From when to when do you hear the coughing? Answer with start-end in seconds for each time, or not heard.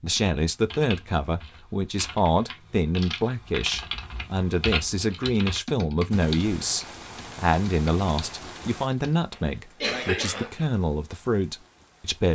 9.3-10.7.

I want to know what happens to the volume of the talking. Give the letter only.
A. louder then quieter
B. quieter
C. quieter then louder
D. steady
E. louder
D.